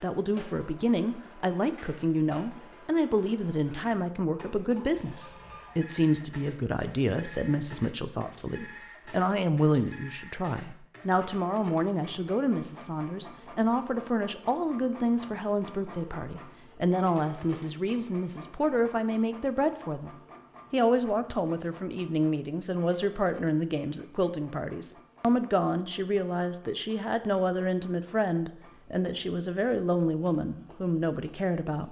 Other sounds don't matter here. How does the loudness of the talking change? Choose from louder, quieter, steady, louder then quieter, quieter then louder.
steady.